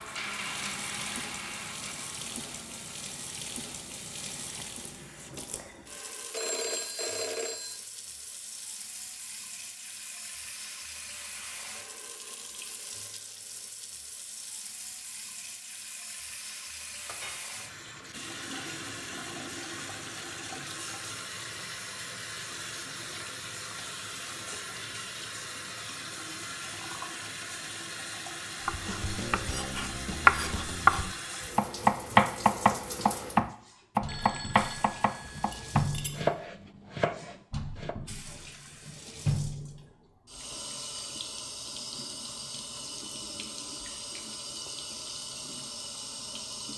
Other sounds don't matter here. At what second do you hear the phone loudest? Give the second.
7 s.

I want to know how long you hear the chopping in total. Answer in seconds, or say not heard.
9 s.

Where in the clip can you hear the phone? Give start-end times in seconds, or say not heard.
6.3-7.8, 34.0-35.9.